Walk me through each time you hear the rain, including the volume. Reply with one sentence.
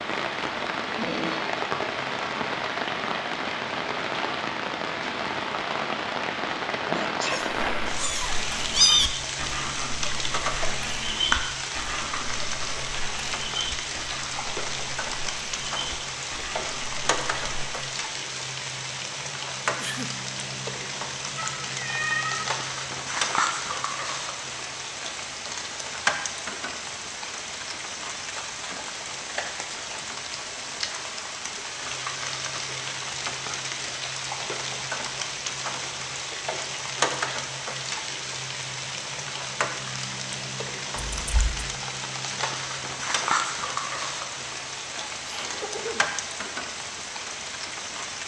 The rain can be heard from 0.0 to 48.2 s, at a steady volume.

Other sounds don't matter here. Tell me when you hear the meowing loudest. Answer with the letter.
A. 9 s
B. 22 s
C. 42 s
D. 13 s
A.